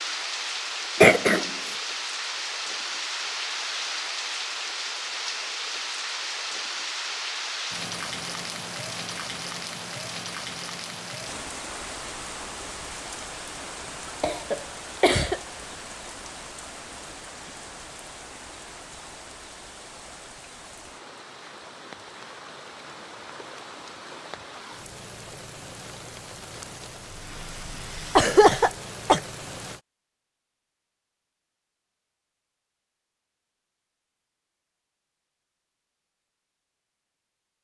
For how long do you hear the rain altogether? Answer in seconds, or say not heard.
30 s.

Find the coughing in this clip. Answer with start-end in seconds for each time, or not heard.
1.0-1.5, 14.2-15.4, 28.1-29.2.